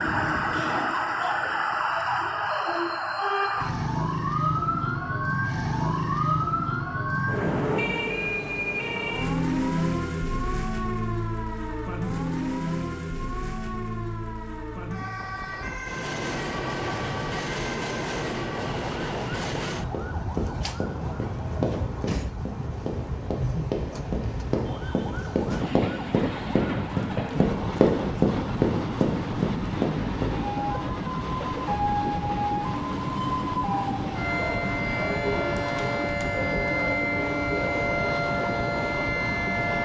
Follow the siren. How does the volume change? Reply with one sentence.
The loudness of the siren goes down, then up.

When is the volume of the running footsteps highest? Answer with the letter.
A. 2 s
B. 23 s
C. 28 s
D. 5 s
C.